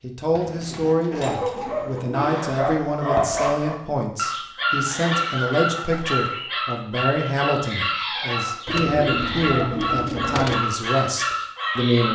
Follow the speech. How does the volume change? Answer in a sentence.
The volume of the speech stays about the same.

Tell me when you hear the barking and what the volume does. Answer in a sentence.
You can hear the barking from 1.1 to 12.1 s, at a steady volume.